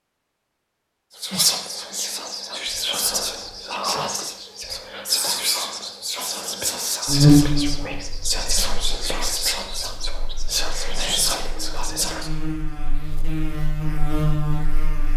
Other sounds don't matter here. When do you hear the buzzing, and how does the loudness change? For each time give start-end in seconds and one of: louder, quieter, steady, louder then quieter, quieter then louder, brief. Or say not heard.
7.0-15.1 quieter then louder.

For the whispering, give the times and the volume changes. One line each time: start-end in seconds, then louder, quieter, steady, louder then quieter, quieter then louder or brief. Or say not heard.
1.1-12.3 steady.